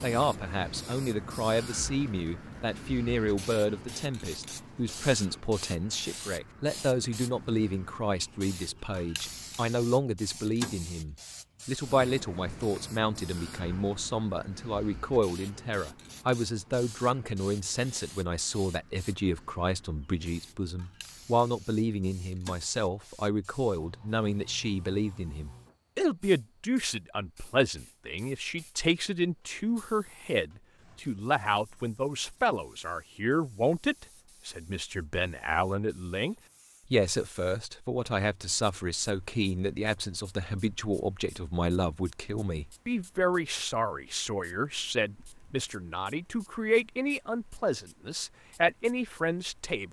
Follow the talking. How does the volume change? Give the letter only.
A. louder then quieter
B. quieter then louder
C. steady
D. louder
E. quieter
C.